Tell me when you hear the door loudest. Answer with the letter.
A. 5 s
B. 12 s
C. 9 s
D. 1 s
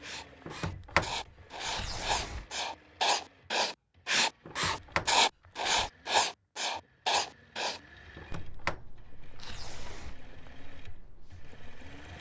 D.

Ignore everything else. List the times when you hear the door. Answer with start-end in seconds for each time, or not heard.
0.5-2.5, 4.5-5.9, 8.2-10.2.